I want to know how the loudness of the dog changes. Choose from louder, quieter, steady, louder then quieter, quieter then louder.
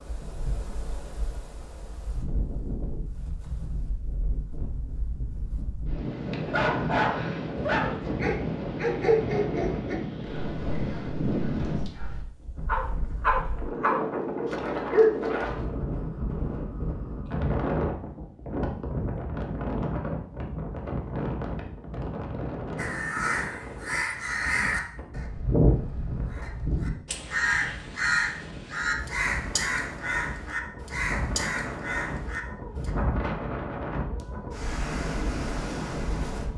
quieter then louder.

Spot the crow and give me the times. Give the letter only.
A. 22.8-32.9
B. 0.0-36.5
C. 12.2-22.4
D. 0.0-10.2
A.